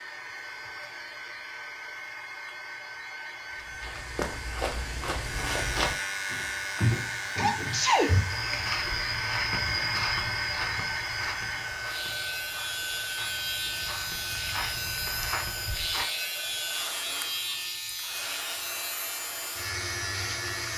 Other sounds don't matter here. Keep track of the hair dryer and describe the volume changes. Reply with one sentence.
The loudness of the hair dryer goes up, then down.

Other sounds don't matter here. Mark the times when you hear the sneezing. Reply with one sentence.
The sneezing can be heard from 7.3 to 8.2 s.